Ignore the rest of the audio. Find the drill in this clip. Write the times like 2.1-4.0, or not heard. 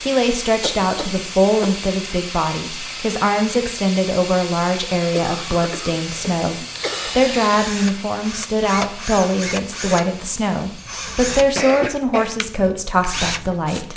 6.2-13.9.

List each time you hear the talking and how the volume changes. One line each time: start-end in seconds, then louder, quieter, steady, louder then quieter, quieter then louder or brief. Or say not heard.
0.0-13.9 steady.